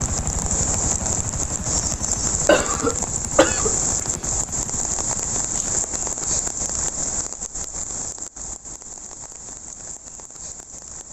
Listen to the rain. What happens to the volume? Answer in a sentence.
The volume of the rain goes down.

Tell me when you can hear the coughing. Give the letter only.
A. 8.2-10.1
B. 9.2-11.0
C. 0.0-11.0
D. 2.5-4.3
D.